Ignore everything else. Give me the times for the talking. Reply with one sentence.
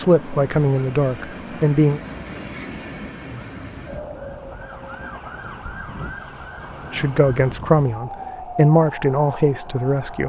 You can hear the talking from 0.0 to 2.0 s and from 6.9 to 10.2 s.